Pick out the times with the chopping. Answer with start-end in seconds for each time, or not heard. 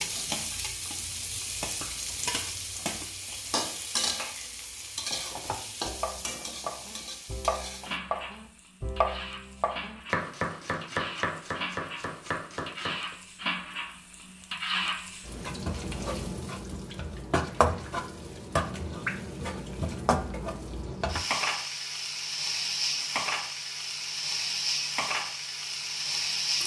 5.4-13.2.